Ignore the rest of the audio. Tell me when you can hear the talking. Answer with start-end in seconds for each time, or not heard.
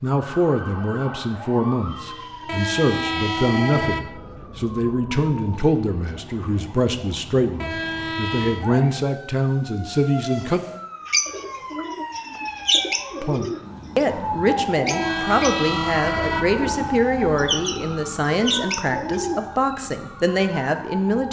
0.0-10.6, 13.2-21.2.